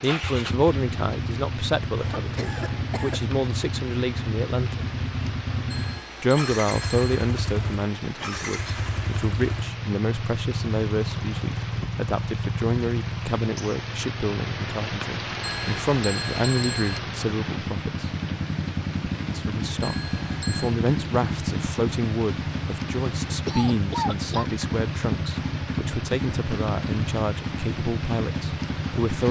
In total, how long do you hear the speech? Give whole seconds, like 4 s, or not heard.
27 s.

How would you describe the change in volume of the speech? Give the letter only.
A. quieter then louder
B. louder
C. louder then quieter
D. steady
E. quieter
D.